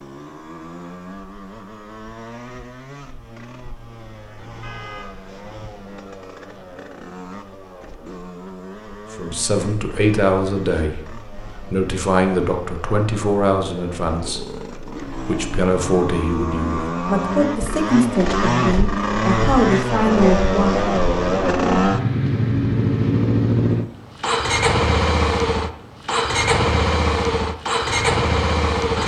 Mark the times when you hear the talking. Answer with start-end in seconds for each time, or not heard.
9.1-20.9.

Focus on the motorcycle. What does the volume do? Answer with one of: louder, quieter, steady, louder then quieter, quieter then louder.
louder.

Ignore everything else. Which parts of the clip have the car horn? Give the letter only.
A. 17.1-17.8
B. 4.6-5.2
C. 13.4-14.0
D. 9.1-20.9
B.